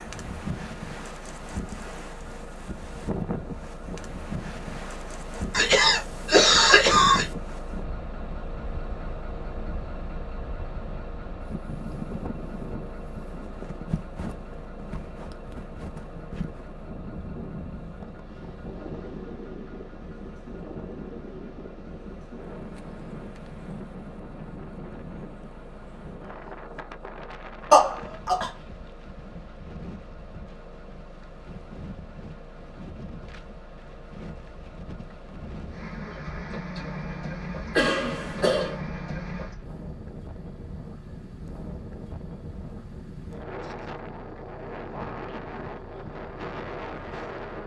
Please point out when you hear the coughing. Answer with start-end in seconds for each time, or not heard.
5.5-7.2, 27.7-28.5, 37.8-38.8.